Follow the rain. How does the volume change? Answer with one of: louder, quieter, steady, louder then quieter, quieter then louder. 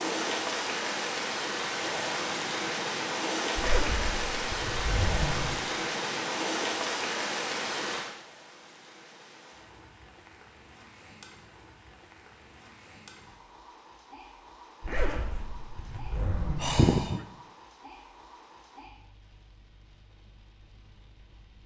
quieter.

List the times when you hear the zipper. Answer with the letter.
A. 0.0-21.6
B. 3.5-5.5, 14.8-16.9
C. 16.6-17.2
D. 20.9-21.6
B.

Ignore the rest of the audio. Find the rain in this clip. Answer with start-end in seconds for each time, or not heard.
0.0-21.6.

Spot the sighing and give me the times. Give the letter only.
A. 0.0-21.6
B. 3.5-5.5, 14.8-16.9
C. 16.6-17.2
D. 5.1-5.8
C.